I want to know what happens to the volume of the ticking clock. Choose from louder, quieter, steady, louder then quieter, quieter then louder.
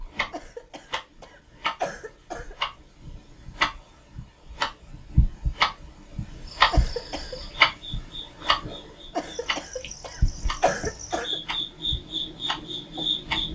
louder then quieter.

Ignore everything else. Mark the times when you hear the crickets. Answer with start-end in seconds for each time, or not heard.
6.5-13.5.